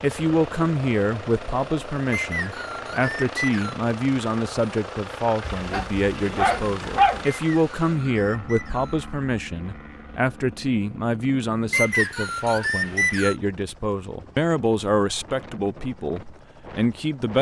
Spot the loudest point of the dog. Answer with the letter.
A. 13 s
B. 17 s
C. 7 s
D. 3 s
C.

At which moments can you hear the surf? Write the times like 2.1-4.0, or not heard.
not heard.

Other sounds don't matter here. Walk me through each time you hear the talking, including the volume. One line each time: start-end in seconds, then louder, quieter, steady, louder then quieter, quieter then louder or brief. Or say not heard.
0.0-17.3 steady.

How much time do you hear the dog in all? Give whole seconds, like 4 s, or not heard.
2 s.